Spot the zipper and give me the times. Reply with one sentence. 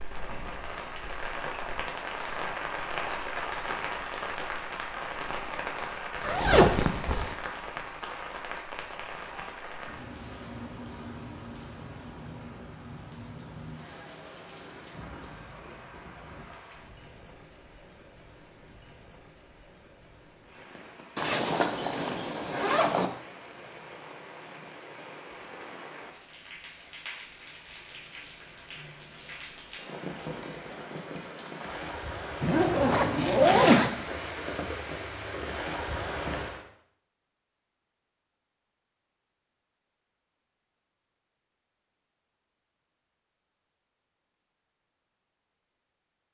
The zipper can be heard from 6.2 to 7.3 s, from 21.1 to 23.1 s and from 32.4 to 33.9 s.